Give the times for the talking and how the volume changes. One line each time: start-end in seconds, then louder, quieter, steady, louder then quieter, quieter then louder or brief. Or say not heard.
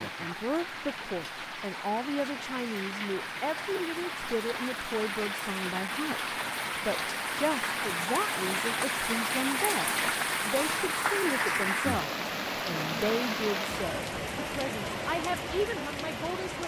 0.0-16.6 steady.